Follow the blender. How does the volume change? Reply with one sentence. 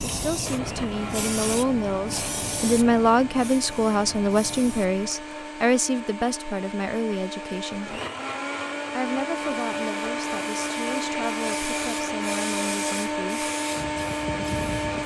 The volume of the blender goes up.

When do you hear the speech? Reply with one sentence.
You can hear the speech from 0.0 to 8.0 s and from 8.9 to 13.5 s.